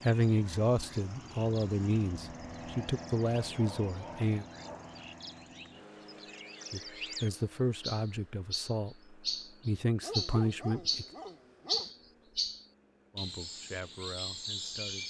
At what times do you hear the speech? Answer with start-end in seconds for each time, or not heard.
0.0-4.5, 6.7-11.1, 13.2-15.0.